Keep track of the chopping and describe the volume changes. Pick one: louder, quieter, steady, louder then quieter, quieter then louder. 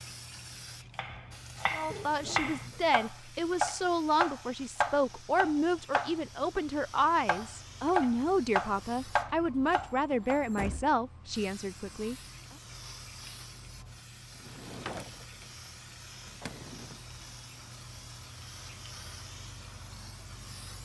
louder.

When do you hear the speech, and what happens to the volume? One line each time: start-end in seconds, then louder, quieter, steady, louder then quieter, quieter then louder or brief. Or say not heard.
1.7-12.2 steady.